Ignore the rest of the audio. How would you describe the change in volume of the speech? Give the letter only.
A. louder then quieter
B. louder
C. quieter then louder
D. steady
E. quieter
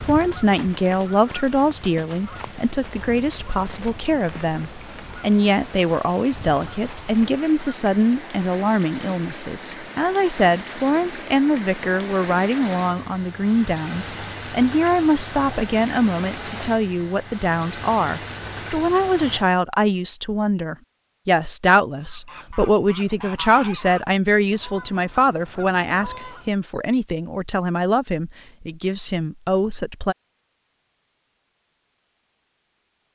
D.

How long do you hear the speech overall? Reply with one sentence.
You can hear the speech for 30 seconds altogether.